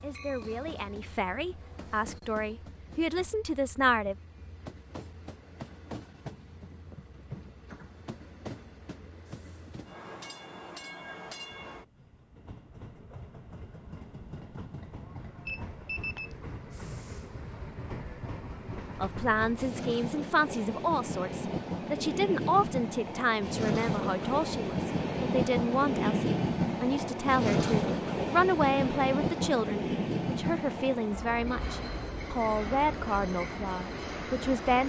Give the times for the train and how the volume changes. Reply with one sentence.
You can hear the train from 0.0 to 34.8 s, getting louder.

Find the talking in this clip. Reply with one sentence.
You can hear the talking from 0.0 to 4.2 s and from 18.9 to 34.8 s.